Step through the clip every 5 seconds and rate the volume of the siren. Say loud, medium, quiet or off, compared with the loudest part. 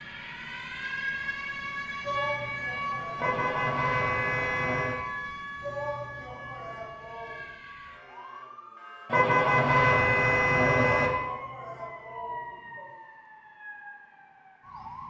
loud, medium, medium.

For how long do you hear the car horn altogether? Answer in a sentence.
The car horn can be heard for 4 seconds in total.